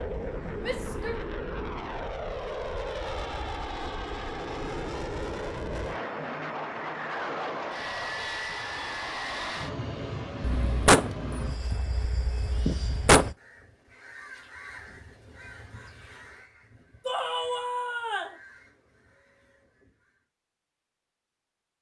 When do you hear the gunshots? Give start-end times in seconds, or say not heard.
10.4-13.3.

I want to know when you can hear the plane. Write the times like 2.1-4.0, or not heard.
0.0-13.3.